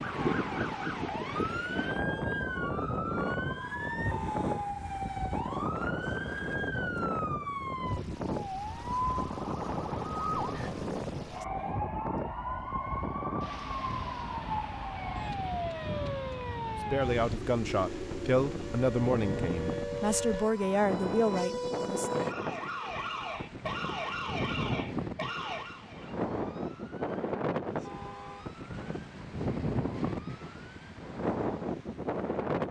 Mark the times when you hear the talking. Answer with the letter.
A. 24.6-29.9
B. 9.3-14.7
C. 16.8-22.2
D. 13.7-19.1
C.